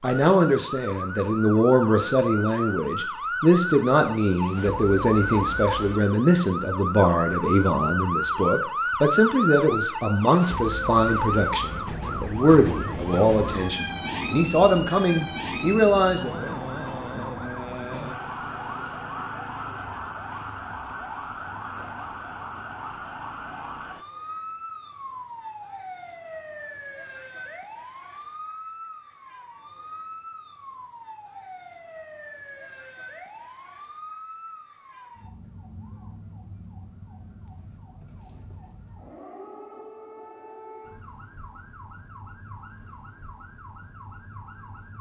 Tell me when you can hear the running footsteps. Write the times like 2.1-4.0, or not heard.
not heard.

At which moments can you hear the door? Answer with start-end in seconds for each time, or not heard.
not heard.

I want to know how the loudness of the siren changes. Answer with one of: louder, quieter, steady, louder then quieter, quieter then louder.
quieter.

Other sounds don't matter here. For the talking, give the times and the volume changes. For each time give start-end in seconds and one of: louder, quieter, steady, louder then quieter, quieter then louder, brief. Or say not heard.
0.0-16.6 steady.